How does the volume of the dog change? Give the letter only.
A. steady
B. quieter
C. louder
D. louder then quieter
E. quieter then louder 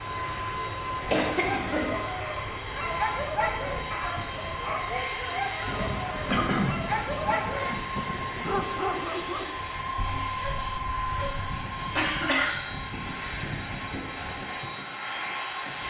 B.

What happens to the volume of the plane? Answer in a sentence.
The loudness of the plane stays about the same.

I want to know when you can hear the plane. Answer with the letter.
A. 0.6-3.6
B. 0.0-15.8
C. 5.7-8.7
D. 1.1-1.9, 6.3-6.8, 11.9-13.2
B.